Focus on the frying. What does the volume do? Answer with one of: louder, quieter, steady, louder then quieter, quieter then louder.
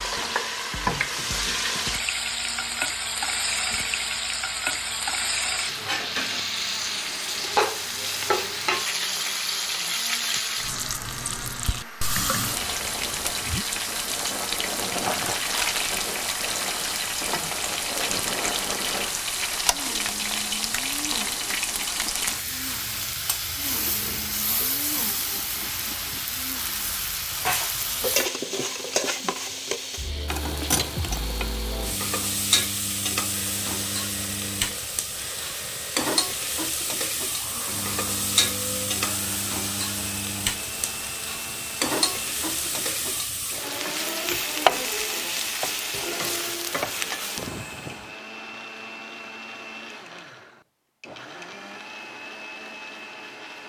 steady.